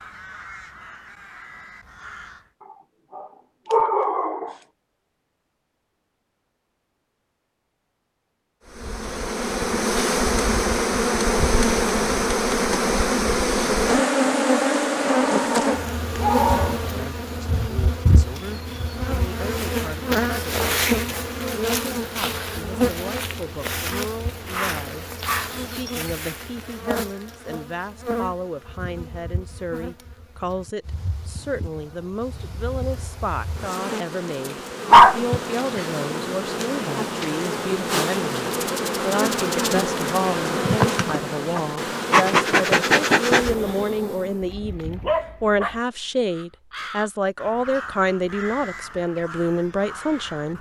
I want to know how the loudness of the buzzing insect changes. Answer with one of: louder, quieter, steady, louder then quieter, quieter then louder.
quieter then louder.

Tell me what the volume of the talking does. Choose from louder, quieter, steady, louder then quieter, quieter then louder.
louder.